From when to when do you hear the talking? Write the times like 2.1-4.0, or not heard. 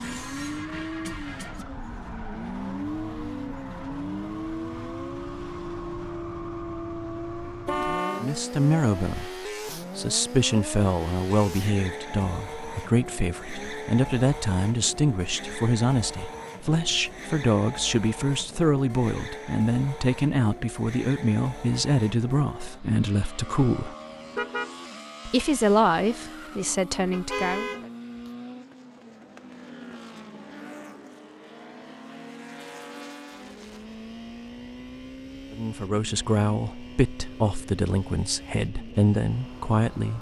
8.2-23.9, 25.2-27.7, 35.5-40.1.